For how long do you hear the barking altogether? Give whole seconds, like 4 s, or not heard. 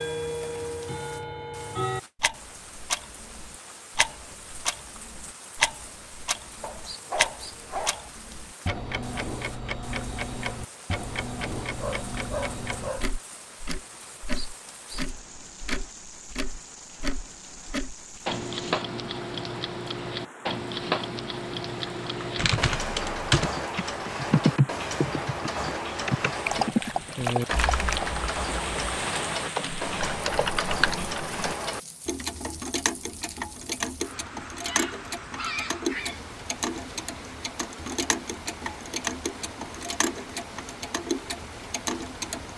6 s.